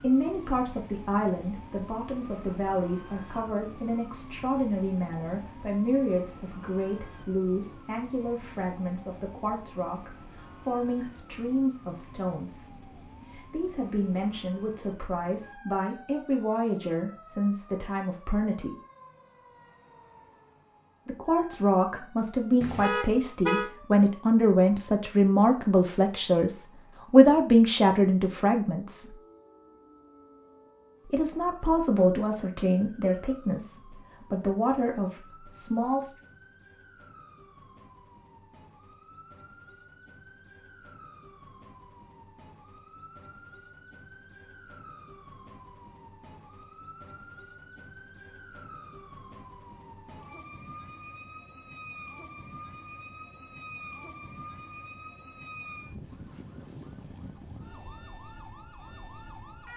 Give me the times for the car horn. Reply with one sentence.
You can hear the car horn from 22.6 to 23.7 s.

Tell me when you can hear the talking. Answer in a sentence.
You can hear the talking from 0.0 to 18.8 s, from 21.1 to 29.1 s and from 31.1 to 36.1 s.